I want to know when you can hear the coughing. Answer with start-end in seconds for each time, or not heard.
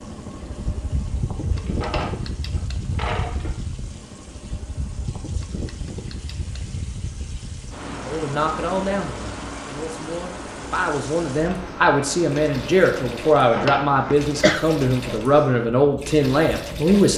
13.6-14.7.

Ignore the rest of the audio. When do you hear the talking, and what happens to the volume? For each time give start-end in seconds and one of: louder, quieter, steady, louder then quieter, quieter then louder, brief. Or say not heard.
8.1-17.1 louder.